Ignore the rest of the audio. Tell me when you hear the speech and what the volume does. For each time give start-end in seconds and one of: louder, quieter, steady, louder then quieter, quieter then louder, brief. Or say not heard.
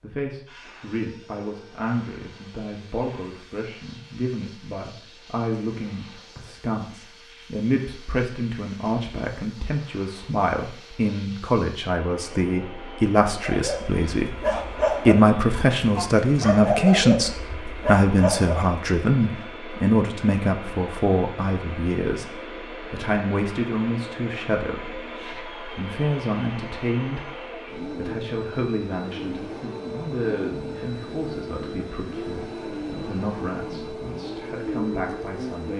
0.0-35.7 louder then quieter.